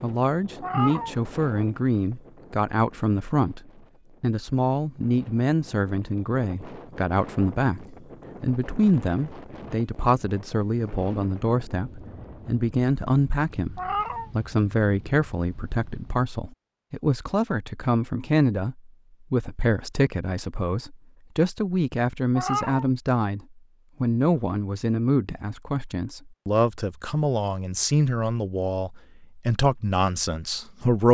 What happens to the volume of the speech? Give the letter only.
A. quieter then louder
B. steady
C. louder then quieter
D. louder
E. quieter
B.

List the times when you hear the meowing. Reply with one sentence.
You can hear the meowing from 0.6 to 1.1 s, from 13.8 to 14.3 s and from 22.4 to 22.9 s.